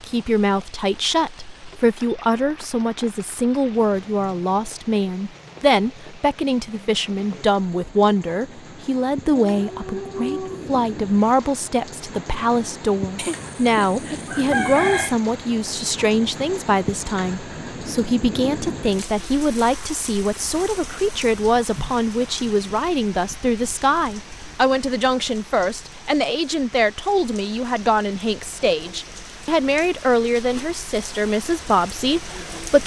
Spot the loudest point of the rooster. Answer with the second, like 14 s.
15 s.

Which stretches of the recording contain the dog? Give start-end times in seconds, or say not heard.
9.4-10.8.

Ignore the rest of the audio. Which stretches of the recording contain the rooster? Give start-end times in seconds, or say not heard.
13.2-15.2.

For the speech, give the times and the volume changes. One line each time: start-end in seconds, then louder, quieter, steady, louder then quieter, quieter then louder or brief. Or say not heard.
0.0-32.8 steady.